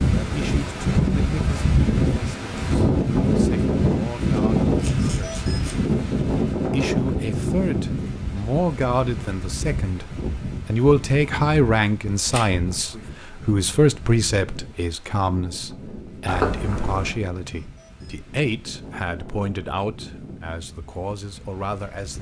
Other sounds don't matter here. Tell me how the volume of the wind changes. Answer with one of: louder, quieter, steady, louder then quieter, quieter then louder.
quieter.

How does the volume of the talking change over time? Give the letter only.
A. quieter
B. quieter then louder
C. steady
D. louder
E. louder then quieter
E.